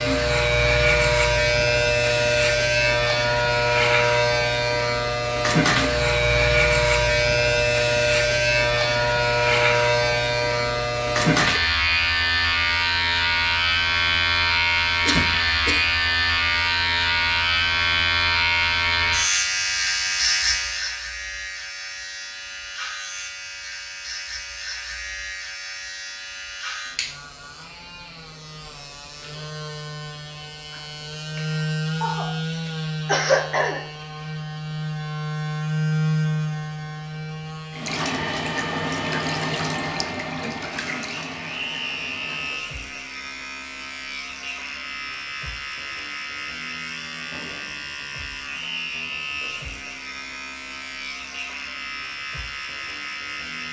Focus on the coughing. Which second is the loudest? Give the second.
33 s.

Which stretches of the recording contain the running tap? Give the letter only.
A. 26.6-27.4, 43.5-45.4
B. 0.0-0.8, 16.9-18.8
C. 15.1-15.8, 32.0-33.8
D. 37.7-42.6
D.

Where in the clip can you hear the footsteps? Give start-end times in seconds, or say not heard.
not heard.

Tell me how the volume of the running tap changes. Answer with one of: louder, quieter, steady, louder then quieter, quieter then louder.
quieter.